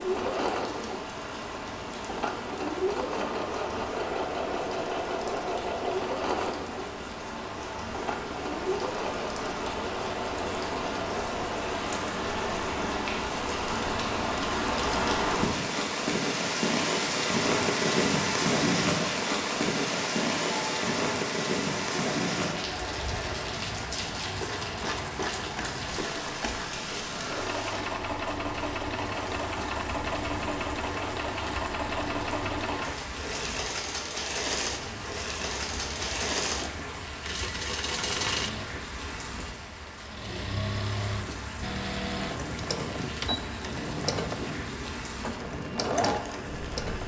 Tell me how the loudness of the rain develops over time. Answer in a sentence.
The volume of the rain goes up, then down.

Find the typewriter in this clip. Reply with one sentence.
You can't hear the typewriter here.